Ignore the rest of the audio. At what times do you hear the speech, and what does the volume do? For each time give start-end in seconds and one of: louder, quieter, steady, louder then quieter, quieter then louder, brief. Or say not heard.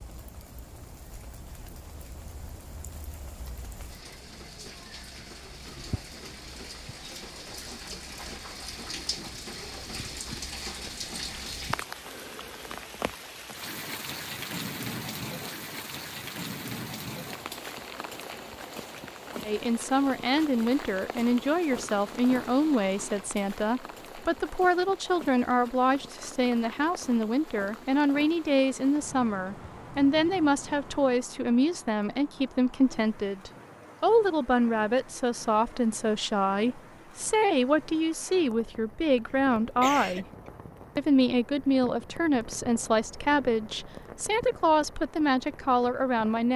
19.4-40.2 steady
41.0-46.5 steady.